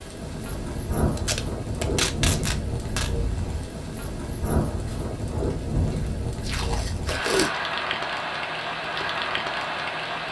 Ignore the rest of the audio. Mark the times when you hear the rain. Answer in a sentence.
The rain can be heard from 0.0 to 10.2 s.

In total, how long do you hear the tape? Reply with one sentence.
The tape can be heard for 3 seconds in total.